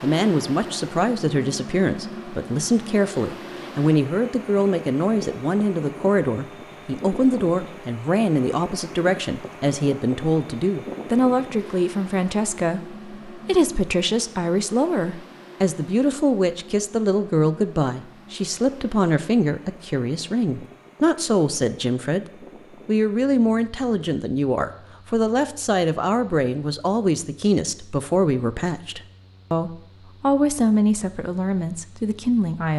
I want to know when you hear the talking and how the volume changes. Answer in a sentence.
You can hear the talking from 0.0 to 22.2 s, at a steady volume; and from 22.9 to 32.7 s, at a steady volume.